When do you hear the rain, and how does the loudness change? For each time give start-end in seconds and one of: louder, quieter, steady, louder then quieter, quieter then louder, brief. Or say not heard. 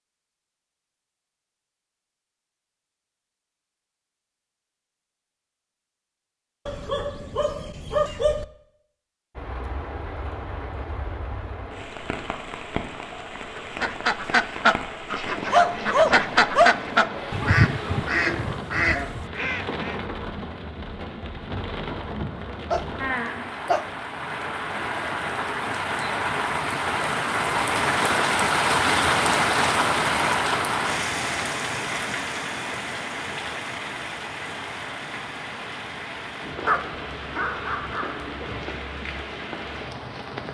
9.3-40.4 louder then quieter.